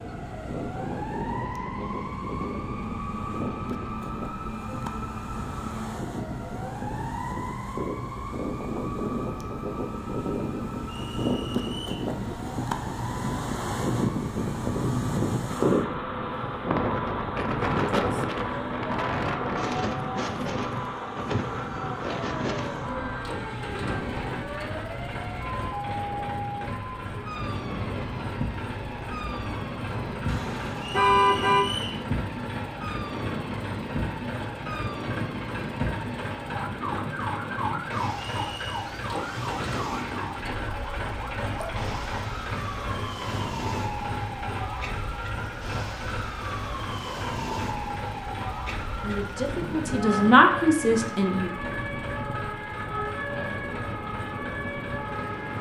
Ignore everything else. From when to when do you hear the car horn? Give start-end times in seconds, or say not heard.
30.2-31.6.